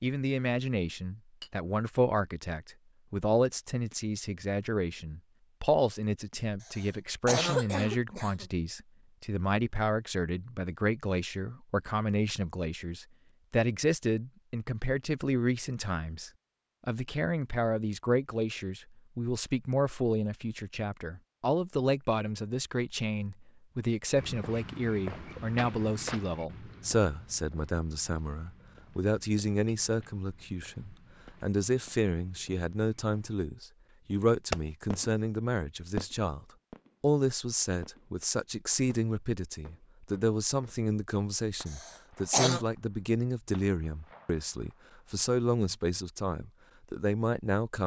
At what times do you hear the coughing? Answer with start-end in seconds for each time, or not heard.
6.6-8.4, 41.6-42.6.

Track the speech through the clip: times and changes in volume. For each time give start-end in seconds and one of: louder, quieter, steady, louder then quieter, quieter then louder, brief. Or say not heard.
0.0-47.8 steady.